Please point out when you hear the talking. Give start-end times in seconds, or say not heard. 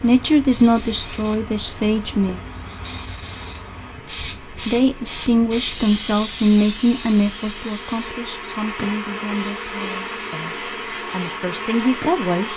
0.0-2.4, 4.7-12.5.